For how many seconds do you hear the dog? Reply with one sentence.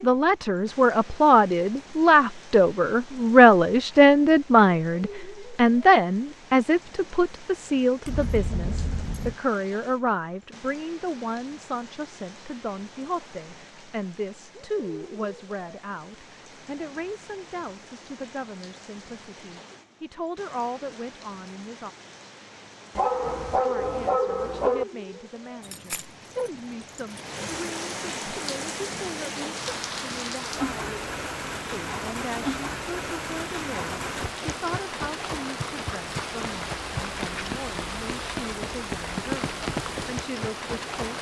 You can hear the dog for 2 seconds altogether.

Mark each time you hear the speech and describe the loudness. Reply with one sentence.
The speech can be heard from 0.0 to 21.9 s, getting quieter; and from 23.5 to 41.1 s, at a steady volume.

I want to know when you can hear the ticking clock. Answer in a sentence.
You can't hear the ticking clock here.